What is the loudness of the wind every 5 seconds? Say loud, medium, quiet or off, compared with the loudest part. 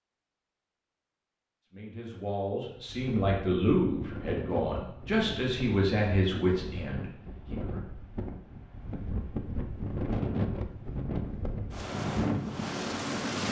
medium, medium, loud.